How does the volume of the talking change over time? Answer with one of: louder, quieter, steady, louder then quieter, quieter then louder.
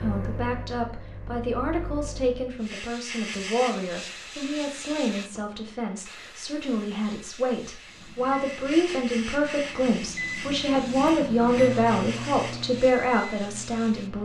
louder.